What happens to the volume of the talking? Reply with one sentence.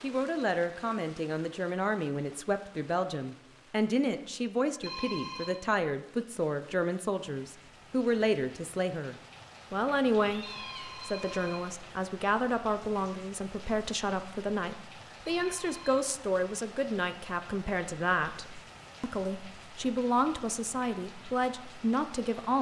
The loudness of the talking stays about the same.